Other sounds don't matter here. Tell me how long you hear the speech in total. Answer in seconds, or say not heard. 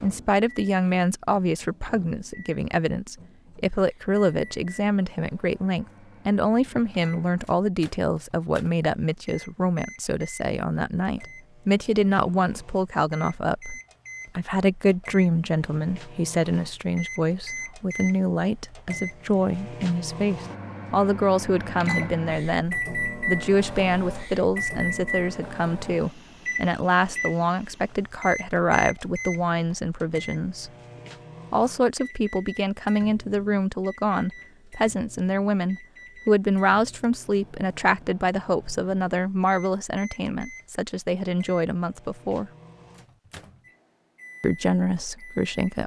43 s.